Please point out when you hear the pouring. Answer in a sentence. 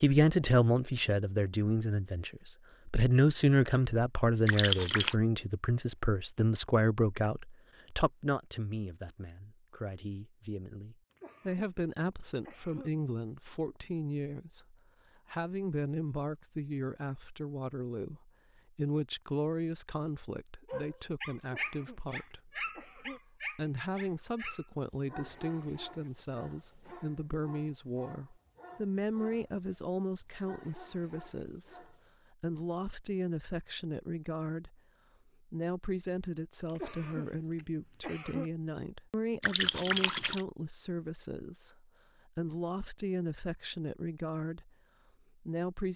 The pouring can be heard from 4.5 to 5.2 s and from 39.4 to 40.5 s.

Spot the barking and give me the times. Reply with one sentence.
The barking can be heard from 20.6 to 32.1 s.